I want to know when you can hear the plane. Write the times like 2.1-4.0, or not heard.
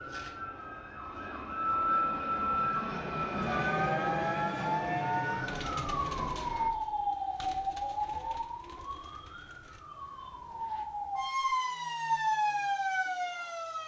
0.0-6.7.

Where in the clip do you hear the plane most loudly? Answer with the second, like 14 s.
4 s.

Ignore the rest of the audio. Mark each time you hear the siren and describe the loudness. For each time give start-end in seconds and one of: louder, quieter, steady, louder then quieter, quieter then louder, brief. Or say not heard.
0.0-13.8 quieter then louder.